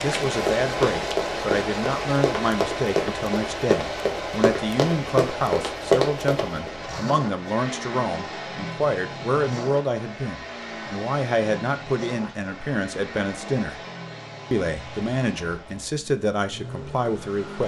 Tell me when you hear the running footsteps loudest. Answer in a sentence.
The loudest moment of the running footsteps is at 6 seconds.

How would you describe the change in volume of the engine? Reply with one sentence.
The volume of the engine goes down.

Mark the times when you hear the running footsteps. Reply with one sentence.
You can hear the running footsteps from 0.3 to 6.7 s.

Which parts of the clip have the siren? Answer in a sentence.
The siren can't be heard in this clip.